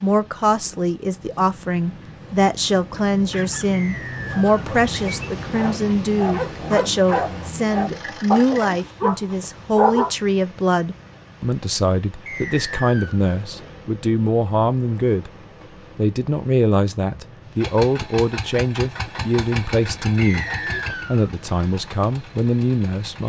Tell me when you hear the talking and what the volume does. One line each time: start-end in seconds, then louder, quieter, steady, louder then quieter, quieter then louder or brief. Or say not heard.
0.0-15.3 steady
15.9-23.2 steady.